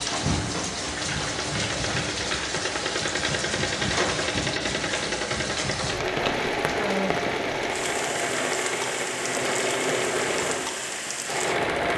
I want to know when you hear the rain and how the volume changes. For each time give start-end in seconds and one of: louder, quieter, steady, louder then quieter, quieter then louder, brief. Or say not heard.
0.0-11.9 steady.